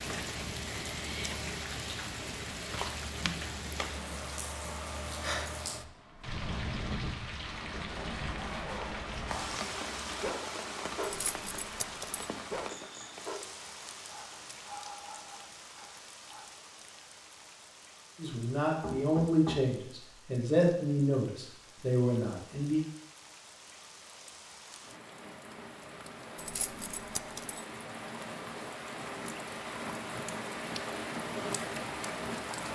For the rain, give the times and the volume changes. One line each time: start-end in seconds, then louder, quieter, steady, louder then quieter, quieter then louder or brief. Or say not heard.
0.0-32.7 quieter then louder.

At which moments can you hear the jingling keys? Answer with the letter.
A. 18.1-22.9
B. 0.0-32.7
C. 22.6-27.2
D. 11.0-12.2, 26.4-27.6
D.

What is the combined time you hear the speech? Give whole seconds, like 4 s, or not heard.
5 s.